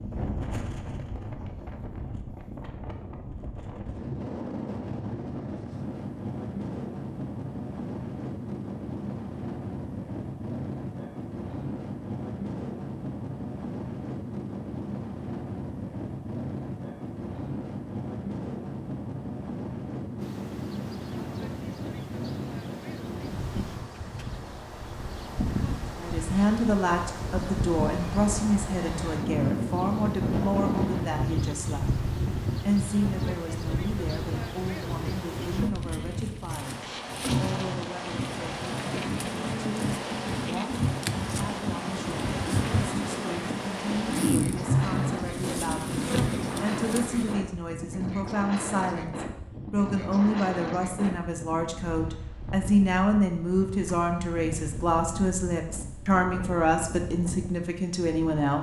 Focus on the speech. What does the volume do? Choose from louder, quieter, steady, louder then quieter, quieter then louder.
quieter then louder.